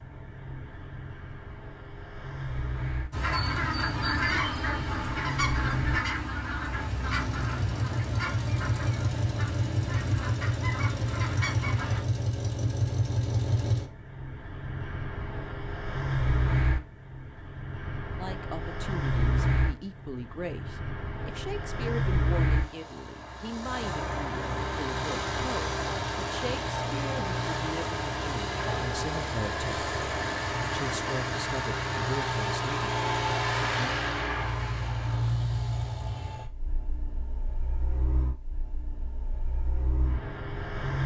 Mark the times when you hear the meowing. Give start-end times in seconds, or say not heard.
not heard.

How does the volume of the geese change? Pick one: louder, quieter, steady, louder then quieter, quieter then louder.
quieter.